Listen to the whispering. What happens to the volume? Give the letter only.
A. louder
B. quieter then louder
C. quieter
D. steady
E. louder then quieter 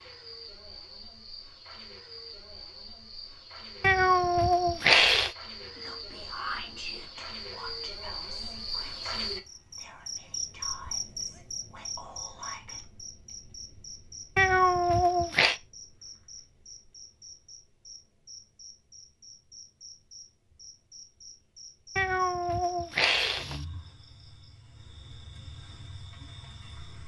B.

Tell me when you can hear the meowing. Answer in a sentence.
The meowing can be heard from 3.8 to 5.3 s, from 14.3 to 15.6 s and from 21.9 to 23.6 s.